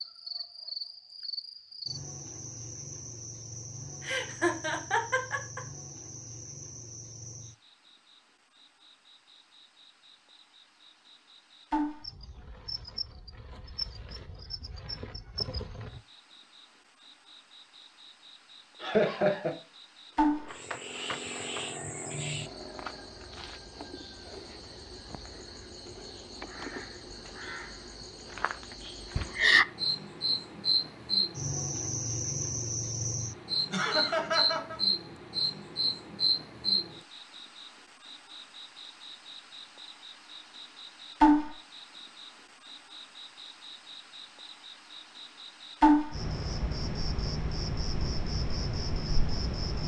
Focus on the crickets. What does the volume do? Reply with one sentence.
The volume of the crickets goes up.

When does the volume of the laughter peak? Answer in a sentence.
The volume of the laughter peaks at 19 seconds.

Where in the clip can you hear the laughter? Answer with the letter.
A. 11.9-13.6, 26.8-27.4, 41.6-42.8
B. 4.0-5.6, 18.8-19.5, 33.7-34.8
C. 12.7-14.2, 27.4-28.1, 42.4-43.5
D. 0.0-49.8
B.